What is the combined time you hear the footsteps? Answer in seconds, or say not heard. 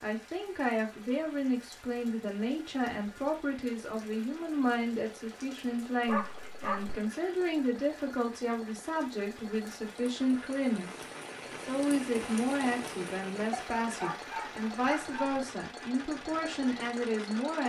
not heard.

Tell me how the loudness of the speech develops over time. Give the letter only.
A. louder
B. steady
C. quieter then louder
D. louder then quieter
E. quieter
B.